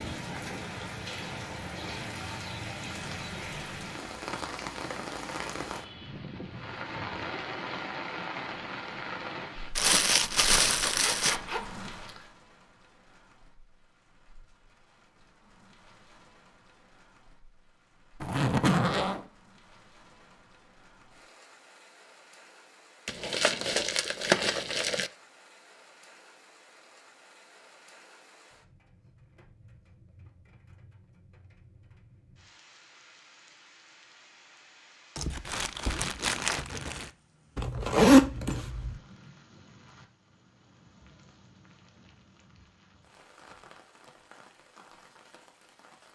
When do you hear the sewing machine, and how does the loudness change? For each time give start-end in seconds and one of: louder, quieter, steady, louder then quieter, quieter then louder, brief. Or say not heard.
not heard.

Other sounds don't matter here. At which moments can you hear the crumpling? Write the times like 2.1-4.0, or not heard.
9.8-11.4, 23.1-25.1, 35.1-37.1.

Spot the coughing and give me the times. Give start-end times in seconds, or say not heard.
not heard.